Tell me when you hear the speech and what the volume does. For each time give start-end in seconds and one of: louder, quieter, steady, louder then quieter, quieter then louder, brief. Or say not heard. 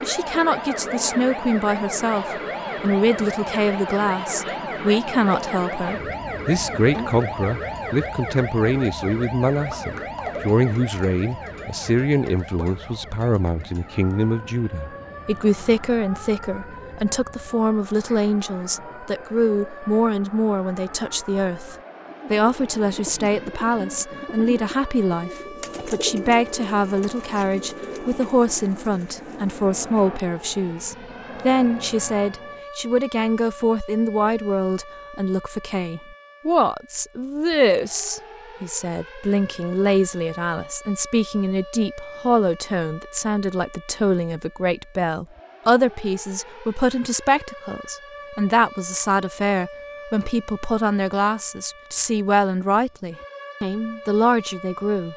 0.0-55.1 steady.